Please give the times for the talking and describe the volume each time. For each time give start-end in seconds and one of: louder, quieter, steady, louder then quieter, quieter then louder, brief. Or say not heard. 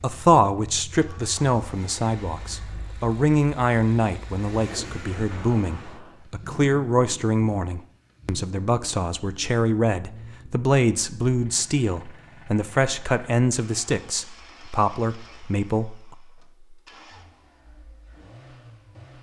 0.0-16.0 steady.